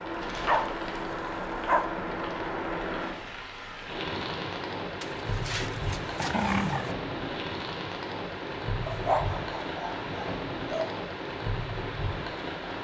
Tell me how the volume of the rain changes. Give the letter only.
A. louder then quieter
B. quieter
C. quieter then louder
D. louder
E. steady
E.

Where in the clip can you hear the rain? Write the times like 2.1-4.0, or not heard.
0.0-12.7.